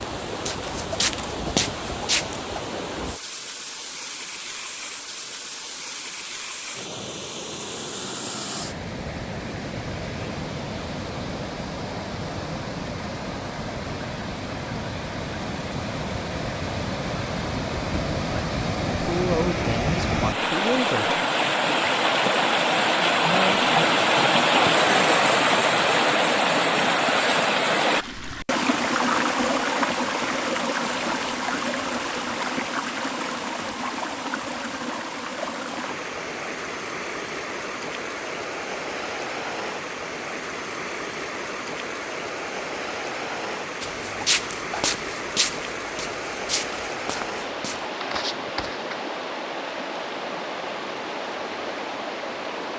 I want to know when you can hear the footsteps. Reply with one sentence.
You can hear the footsteps from 0.0 to 2.5 s and from 43.8 to 49.0 s.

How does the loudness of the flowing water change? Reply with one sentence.
The volume of the flowing water goes up, then down.